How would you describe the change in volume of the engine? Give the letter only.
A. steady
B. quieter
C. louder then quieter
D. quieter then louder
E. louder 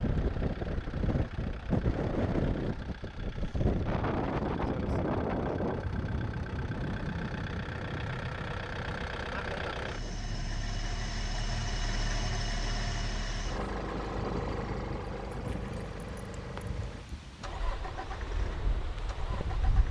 C.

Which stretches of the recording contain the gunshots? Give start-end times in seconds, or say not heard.
not heard.